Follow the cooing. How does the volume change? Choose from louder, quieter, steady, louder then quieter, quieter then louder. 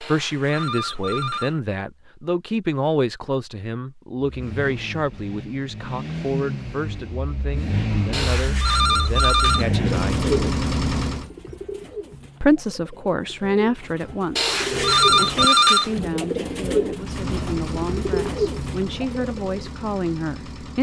quieter then louder.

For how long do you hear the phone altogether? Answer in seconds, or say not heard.
5 s.